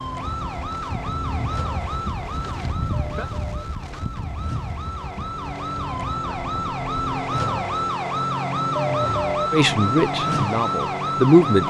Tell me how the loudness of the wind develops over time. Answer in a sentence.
The volume of the wind goes down.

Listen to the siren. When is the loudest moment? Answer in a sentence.
The loudest moment of the siren is at 9 seconds.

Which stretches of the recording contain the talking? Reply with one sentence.
The talking can be heard from 9.5 to 11.6 s.